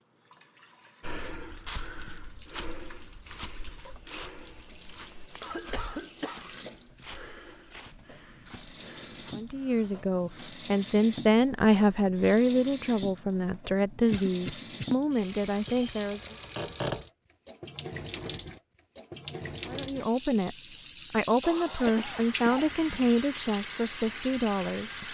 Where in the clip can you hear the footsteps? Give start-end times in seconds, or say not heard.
1.0-10.5.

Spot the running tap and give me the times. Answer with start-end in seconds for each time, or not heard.
0.0-25.0.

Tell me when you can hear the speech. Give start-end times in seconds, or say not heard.
9.3-16.4, 19.6-25.0.